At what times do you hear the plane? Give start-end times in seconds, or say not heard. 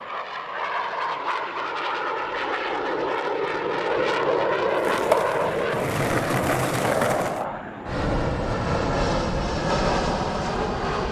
0.0-11.0.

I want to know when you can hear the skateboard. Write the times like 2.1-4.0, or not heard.
4.8-7.5.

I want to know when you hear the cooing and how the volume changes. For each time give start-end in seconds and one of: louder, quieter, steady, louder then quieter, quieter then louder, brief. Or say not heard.
not heard.